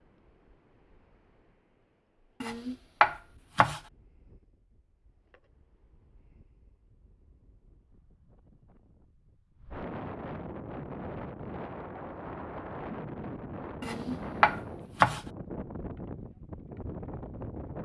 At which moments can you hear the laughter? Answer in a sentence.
The laughter can't be heard in this clip.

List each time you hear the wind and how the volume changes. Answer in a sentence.
The wind can be heard from 0.0 to 17.7 s, getting louder.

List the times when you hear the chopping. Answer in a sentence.
You can hear the chopping from 2.4 to 3.8 s and from 13.8 to 15.2 s.